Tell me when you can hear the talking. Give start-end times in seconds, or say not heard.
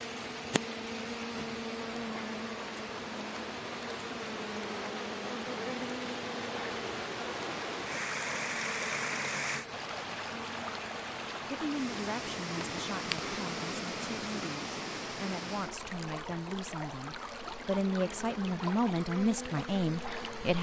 11.4-20.5.